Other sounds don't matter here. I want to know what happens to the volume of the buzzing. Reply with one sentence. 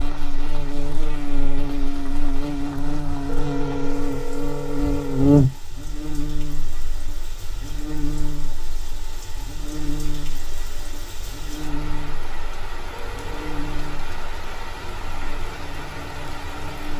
The loudness of the buzzing goes up, then down.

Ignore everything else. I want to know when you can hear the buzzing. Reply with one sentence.
You can hear the buzzing from 0.0 to 16.9 s.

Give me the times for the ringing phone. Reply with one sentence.
You can hear the ringing phone from 3.2 to 5.3 s and from 12.9 to 13.5 s.